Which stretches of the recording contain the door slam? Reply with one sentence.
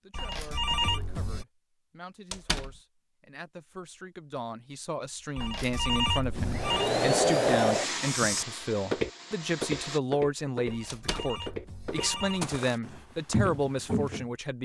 The door slam can be heard from 2.3 to 2.8 s and from 10.8 to 11.3 s.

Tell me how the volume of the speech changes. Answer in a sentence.
The loudness of the speech goes up.